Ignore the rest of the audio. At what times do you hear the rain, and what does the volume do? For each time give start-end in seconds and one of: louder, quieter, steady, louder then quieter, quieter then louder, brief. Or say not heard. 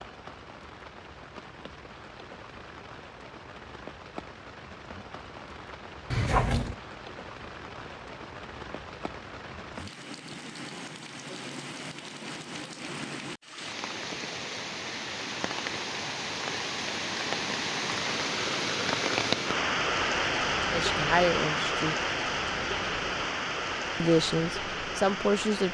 0.0-25.6 louder.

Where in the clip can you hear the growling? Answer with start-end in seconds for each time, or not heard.
6.1-6.8.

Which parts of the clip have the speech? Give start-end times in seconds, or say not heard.
20.7-21.9, 24.0-25.6.